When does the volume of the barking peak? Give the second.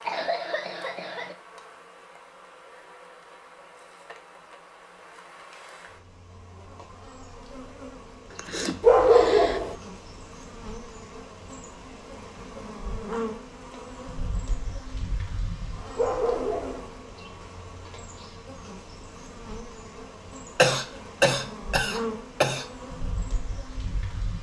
9 s.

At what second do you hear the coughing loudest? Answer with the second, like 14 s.
21 s.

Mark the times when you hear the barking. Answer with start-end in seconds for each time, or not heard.
8.8-9.8, 15.9-16.9.